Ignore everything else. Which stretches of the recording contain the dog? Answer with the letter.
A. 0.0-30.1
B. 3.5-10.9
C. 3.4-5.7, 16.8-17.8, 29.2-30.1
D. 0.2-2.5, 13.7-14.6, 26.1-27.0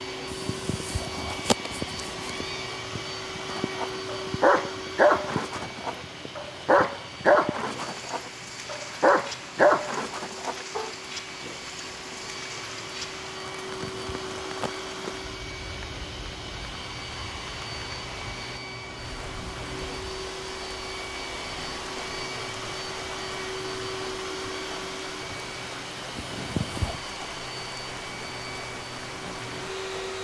B.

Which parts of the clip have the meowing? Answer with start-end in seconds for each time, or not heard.
0.2-2.5, 13.7-14.6, 26.1-27.0.